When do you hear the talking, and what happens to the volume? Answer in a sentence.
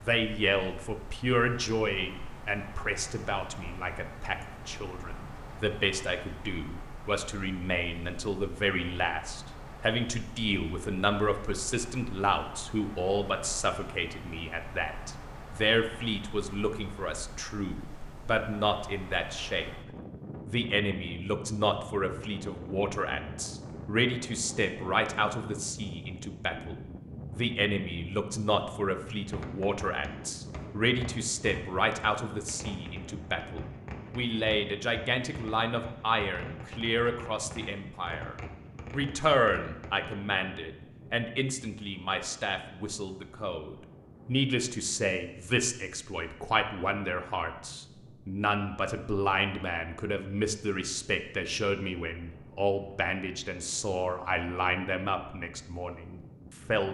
The talking can be heard from 0.0 to 19.7 s, at a steady volume; and from 20.4 to 56.9 s, at a steady volume.